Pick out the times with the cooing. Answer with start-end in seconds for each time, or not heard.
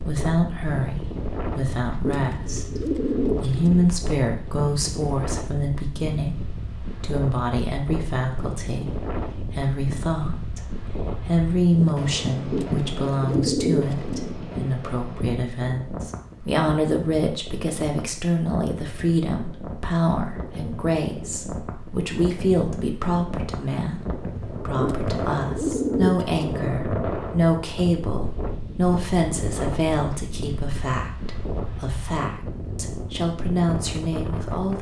2.0-3.9, 12.5-14.3, 24.8-26.6.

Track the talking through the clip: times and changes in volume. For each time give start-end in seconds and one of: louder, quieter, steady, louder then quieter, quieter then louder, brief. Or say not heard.
0.0-34.7 steady.